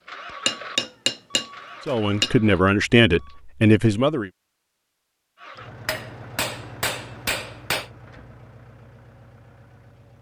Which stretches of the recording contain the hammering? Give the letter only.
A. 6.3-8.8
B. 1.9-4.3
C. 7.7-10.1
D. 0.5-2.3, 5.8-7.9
D.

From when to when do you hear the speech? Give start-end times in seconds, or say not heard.
1.9-4.3.